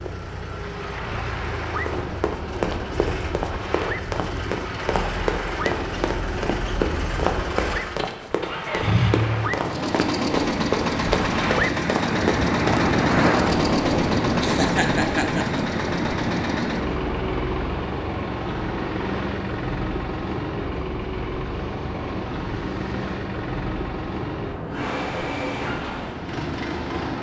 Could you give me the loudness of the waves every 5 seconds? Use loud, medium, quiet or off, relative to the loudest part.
medium, medium, loud, medium, medium, medium.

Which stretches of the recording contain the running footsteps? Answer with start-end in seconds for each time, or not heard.
1.9-12.8.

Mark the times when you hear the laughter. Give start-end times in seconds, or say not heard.
14.4-15.6.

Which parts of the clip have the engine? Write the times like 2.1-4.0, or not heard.
0.0-27.1.